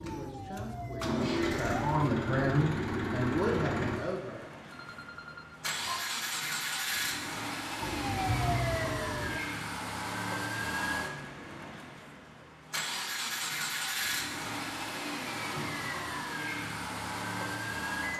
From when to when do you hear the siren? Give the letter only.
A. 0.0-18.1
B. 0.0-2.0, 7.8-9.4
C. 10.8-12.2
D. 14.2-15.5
B.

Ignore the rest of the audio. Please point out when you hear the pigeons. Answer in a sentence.
The pigeons can't be heard in this clip.